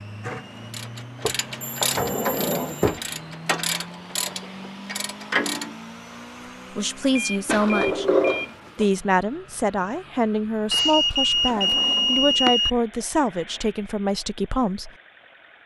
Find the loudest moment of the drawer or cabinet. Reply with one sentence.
The loudest moment of the drawer or cabinet is at 8 seconds.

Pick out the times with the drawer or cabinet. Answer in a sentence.
The drawer or cabinet can be heard from 1.2 to 3.0 s, from 7.5 to 8.8 s and from 11.4 to 12.6 s.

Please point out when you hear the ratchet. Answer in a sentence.
You can hear the ratchet from 0.2 to 5.8 s.